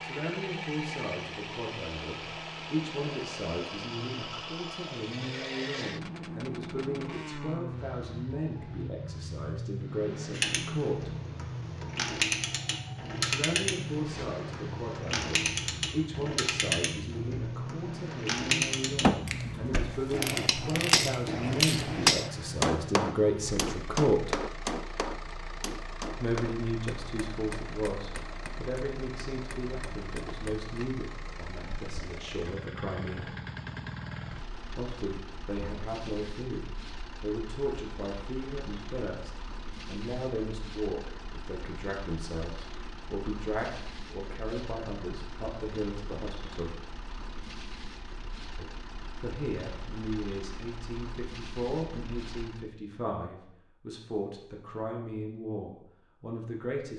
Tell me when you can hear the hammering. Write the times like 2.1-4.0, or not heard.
19.0-30.7.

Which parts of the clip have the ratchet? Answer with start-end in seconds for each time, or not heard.
10.3-21.9.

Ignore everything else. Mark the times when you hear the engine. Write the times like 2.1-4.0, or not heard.
0.0-52.7.